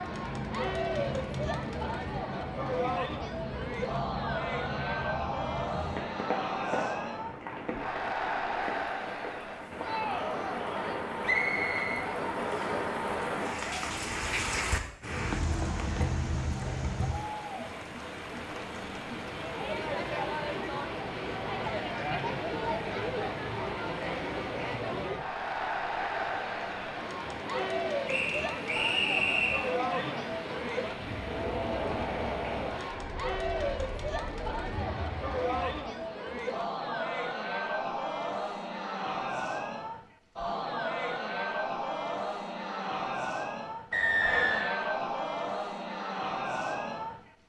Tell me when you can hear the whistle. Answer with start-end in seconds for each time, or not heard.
11.2-12.8, 28.1-29.7, 43.9-44.7.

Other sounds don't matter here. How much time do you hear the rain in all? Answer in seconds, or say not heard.
36 s.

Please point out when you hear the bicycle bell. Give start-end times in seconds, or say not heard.
not heard.